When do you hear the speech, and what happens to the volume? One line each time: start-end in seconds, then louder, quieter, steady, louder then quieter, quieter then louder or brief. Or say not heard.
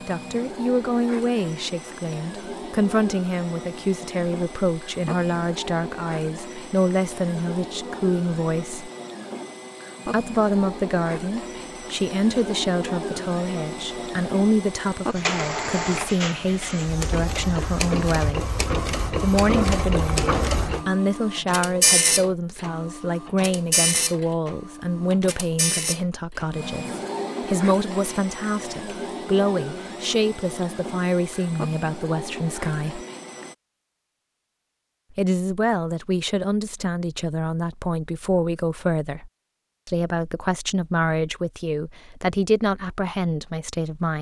0.1-8.9 steady
10.1-18.5 steady
19.2-33.0 steady
35.1-44.1 steady.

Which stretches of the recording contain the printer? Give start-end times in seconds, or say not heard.
0.0-33.5.